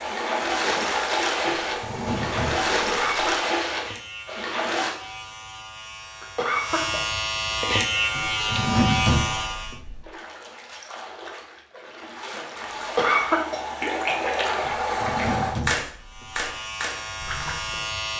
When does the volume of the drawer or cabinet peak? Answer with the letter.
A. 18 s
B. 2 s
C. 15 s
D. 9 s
D.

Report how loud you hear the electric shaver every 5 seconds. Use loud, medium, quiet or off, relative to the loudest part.
quiet, loud, off, medium.